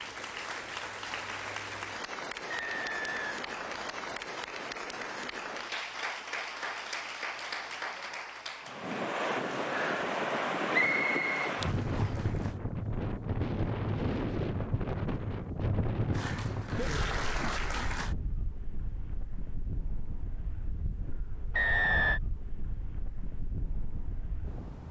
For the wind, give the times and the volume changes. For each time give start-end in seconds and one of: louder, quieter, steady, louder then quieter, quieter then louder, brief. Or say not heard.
8.7-24.8 quieter.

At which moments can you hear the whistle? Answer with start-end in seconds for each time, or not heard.
2.5-4.2, 10.7-12.2, 21.6-22.2.